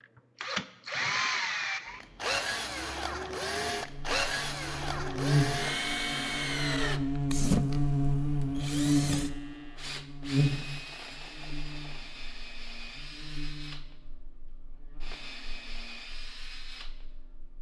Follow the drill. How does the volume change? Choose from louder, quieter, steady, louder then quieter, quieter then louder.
quieter.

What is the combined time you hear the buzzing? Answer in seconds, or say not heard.
14 s.